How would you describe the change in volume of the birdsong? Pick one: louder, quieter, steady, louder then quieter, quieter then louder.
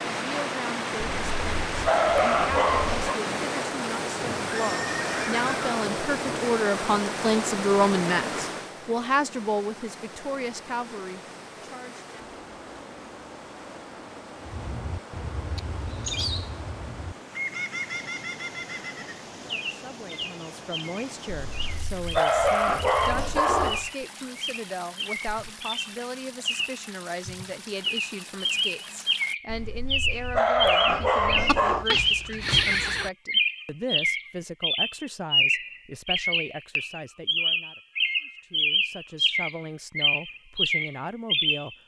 louder.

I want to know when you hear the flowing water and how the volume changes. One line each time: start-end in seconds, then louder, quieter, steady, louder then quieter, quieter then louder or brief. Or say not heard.
0.0-29.4 quieter.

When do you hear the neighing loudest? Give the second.
33 s.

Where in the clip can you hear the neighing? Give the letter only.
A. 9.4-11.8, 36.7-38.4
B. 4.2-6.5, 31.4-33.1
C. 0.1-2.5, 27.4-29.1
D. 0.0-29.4
B.